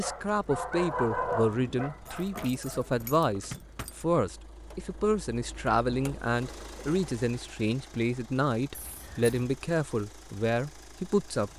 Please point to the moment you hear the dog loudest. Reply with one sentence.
The volume of the dog peaks at 1 second.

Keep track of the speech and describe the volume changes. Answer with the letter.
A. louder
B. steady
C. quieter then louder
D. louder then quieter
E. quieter
B.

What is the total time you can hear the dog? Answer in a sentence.
The dog can be heard for 3 seconds in total.